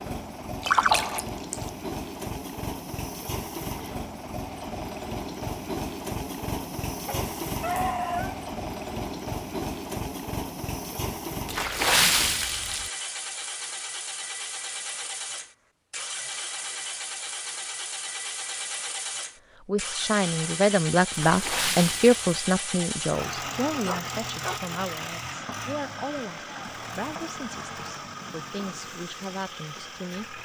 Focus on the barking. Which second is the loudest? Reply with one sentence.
The volume of the barking peaks at 8 seconds.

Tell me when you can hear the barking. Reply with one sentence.
The barking can be heard from 7.0 to 8.4 s and from 23.9 to 24.6 s.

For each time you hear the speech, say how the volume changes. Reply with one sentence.
The speech can be heard from 19.6 to 30.3 s, getting quieter.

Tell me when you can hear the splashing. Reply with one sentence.
You can hear the splashing from 0.6 to 1.6 s, from 11.4 to 12.9 s and from 21.1 to 22.6 s.